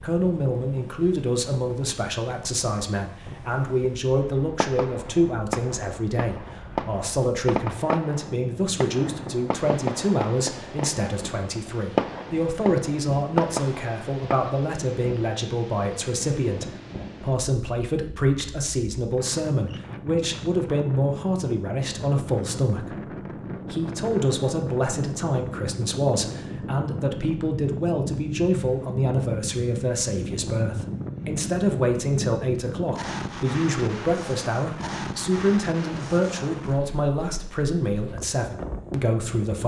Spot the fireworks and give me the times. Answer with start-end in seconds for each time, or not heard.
4.2-14.5.